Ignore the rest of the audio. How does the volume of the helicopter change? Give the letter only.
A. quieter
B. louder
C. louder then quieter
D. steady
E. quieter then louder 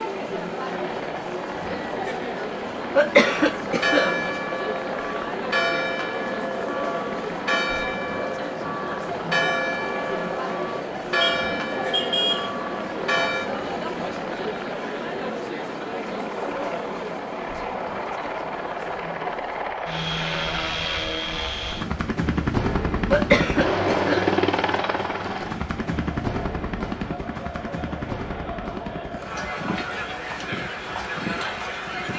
C.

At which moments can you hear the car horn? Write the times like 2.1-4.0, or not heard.
11.2-12.5.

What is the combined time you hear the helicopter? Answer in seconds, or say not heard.
32 s.